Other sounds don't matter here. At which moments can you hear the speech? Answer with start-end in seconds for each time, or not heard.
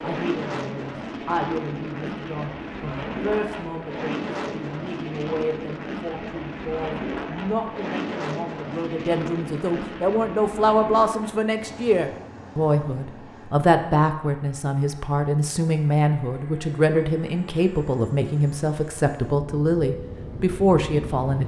0.0-21.4.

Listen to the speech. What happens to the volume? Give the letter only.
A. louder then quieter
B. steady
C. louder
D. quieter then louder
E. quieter
C.